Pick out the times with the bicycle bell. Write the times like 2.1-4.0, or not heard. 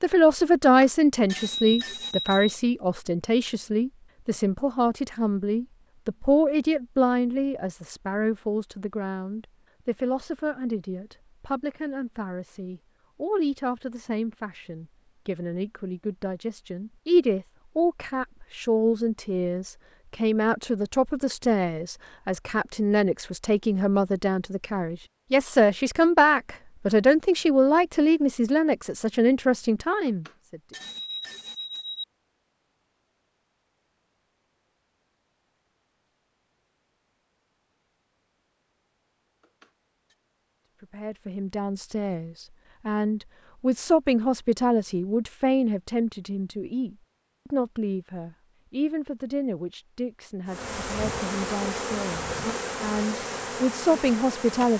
0.6-2.6, 30.1-32.0, 39.4-40.1.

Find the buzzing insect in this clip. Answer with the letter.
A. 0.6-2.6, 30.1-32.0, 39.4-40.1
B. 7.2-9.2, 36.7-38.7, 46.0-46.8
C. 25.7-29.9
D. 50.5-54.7
D.